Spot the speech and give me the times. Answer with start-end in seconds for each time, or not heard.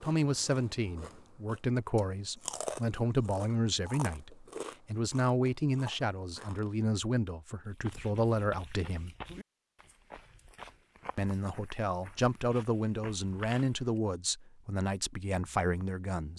0.0-9.2, 11.2-16.3.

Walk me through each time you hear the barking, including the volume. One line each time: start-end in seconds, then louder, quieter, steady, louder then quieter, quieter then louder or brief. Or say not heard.
not heard.